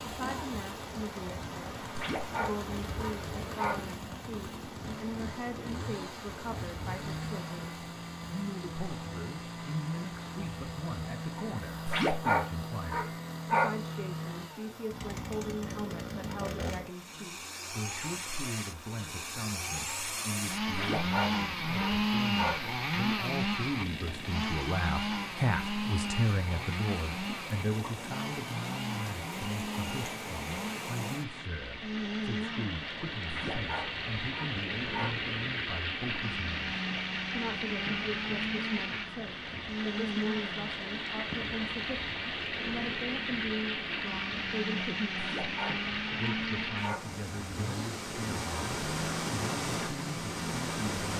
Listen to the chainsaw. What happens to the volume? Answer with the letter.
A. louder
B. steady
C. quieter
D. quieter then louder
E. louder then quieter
E.